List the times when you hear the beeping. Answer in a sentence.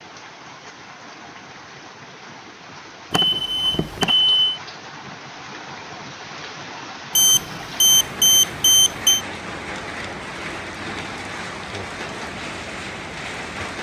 You can hear the beeping from 3.1 to 4.4 s and from 7.2 to 9.2 s.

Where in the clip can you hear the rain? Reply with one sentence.
The rain can be heard from 0.0 to 13.7 s.